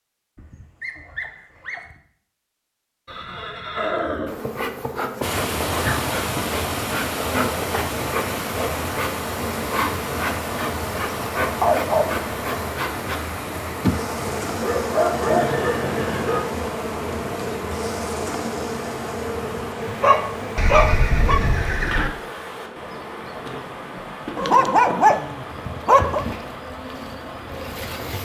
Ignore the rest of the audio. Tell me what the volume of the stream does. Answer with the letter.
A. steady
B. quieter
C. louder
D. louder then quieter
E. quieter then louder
B.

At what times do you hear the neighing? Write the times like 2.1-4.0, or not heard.
3.0-4.4, 15.1-16.4, 20.6-22.1.